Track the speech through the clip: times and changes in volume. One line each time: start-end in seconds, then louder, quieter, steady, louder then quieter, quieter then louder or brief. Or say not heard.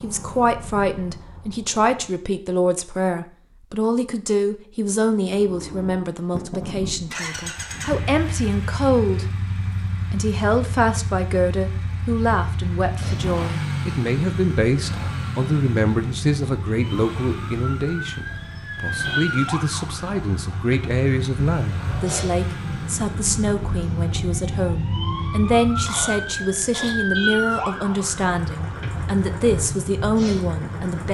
0.0-31.0 steady.